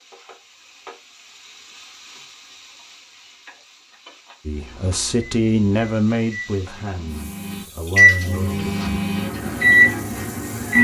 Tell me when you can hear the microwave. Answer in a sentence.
The microwave can be heard from 4.5 to 10.7 s.